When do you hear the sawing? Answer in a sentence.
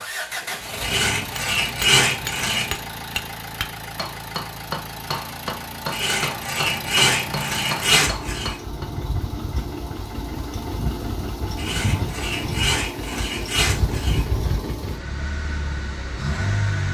The sawing can be heard from 0.8 to 2.8 s, from 5.9 to 8.6 s and from 11.6 to 14.2 s.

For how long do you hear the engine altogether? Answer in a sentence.
You can hear the engine for 17 seconds altogether.